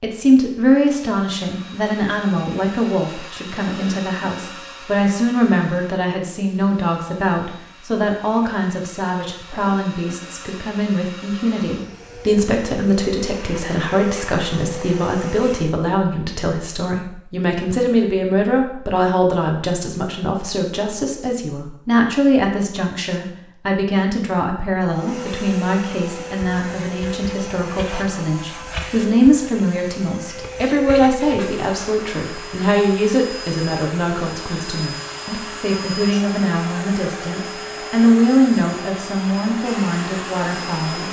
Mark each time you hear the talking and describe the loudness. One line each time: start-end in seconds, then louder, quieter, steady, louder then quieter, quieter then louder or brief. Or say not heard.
0.0-41.0 steady.